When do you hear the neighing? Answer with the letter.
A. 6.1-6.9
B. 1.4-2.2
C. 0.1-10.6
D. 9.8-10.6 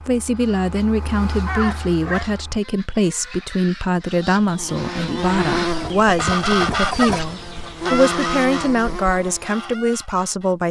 B.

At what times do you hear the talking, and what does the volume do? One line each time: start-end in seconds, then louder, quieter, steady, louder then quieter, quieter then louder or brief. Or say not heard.
0.1-10.6 steady.